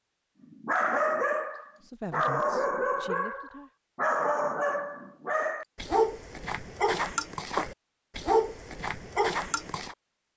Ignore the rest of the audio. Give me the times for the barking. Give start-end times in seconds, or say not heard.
0.5-9.9.